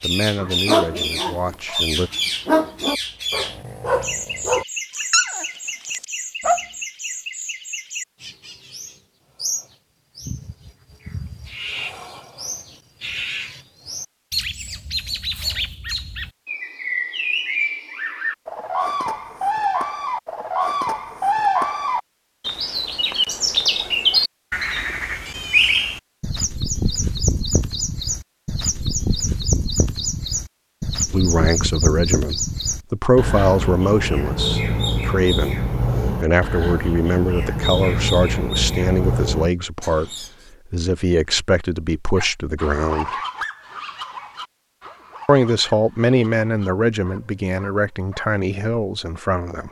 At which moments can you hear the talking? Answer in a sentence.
The talking can be heard from 0.0 to 2.1 s, from 31.1 to 43.1 s and from 45.2 to 49.6 s.